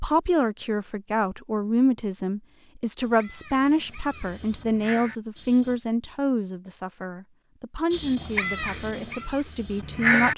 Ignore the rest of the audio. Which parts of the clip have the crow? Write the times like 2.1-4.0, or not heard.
3.0-5.8, 7.9-10.3.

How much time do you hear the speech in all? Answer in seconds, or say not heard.
10 s.